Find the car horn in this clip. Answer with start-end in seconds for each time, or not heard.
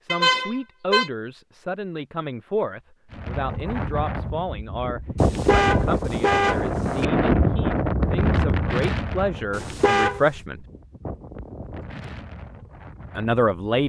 0.1-1.1, 5.2-7.0, 9.5-10.2.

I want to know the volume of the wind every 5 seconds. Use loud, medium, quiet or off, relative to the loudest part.
medium, loud, quiet.